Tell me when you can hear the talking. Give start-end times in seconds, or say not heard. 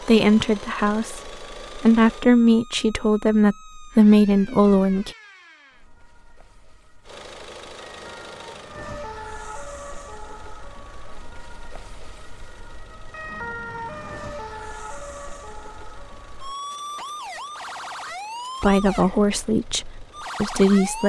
0.0-5.1, 18.6-21.0.